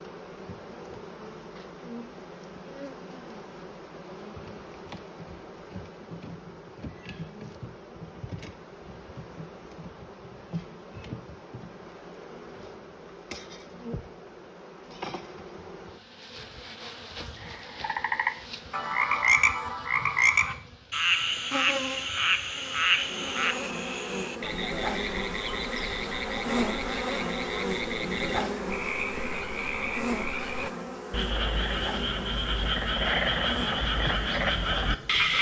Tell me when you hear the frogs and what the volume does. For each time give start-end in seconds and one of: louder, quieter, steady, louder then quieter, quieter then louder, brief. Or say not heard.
17.4-35.3 quieter then louder.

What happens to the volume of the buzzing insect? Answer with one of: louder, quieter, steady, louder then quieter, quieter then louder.
louder.